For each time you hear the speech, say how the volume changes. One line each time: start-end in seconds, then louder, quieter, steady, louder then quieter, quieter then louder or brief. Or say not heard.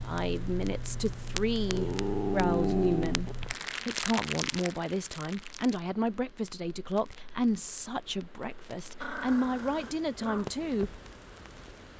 0.0-10.9 steady.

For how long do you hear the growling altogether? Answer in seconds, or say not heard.
3 s.